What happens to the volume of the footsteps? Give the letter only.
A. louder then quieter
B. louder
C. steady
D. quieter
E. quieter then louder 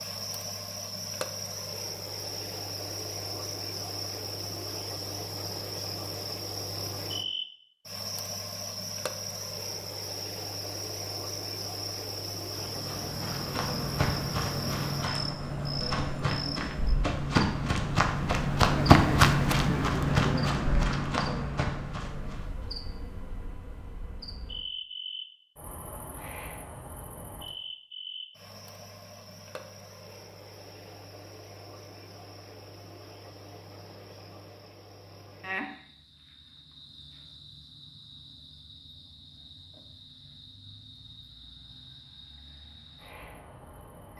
A.